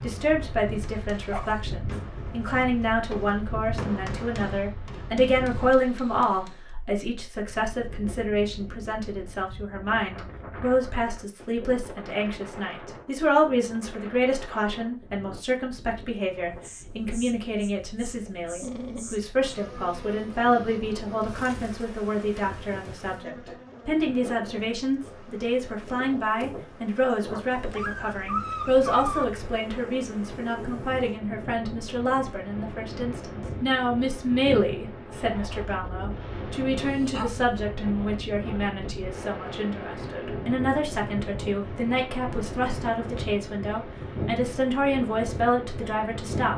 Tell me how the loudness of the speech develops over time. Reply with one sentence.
The loudness of the speech stays about the same.